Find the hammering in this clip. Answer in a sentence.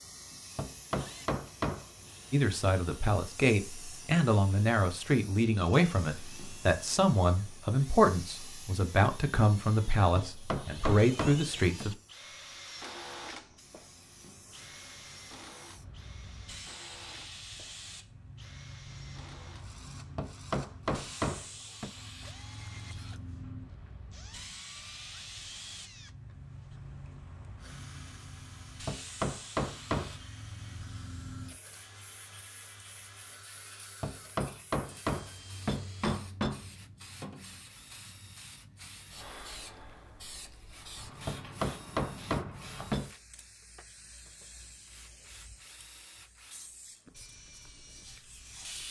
You can hear the hammering from 0.6 to 1.9 s, from 10.2 to 11.9 s, from 20.1 to 21.9 s, from 28.9 to 30.1 s, from 34.0 to 36.6 s and from 41.2 to 43.1 s.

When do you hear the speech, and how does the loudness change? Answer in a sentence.
You can hear the speech from 2.3 to 11.9 s, at a steady volume.